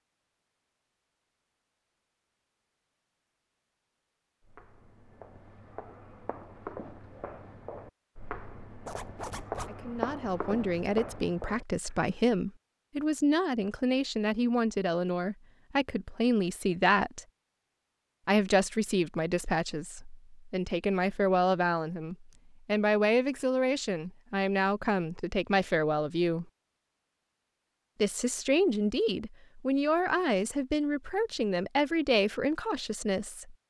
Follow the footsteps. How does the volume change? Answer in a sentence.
The volume of the footsteps goes up.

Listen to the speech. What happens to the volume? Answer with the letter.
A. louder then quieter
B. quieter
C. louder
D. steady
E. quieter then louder
D.